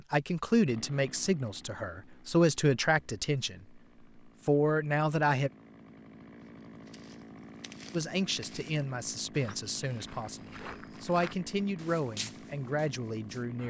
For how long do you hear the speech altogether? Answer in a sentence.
You can hear the speech for 10 seconds altogether.